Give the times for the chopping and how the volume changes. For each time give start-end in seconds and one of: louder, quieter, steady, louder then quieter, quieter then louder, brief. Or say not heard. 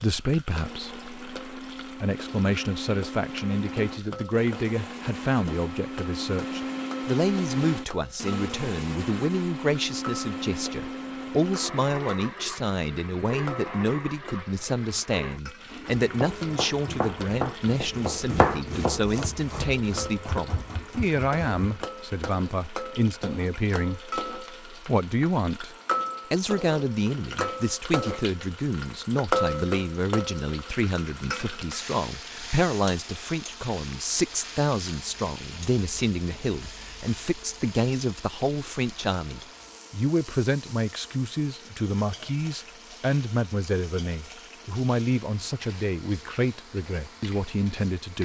15.9-21.9 louder then quieter.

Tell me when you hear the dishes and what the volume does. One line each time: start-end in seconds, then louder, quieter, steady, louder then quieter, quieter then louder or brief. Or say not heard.
not heard.